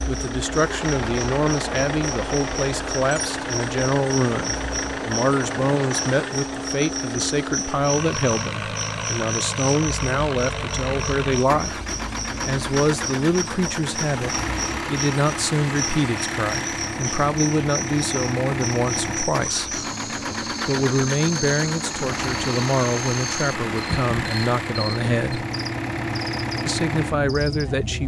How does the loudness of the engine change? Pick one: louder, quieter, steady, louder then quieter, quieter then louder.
steady.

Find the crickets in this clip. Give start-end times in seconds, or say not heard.
0.0-28.0.